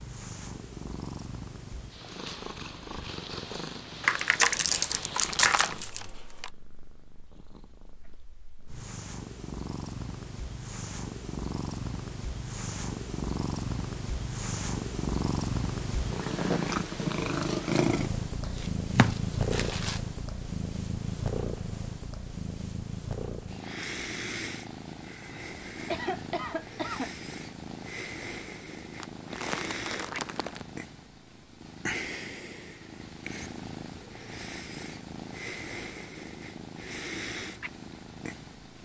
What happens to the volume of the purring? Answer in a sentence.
The loudness of the purring goes up, then down.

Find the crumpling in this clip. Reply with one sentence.
The crumpling can be heard from 4.0 to 6.5 s, from 18.4 to 20.0 s and from 29.0 to 30.6 s.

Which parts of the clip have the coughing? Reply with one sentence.
The coughing can be heard from 25.9 to 27.1 s.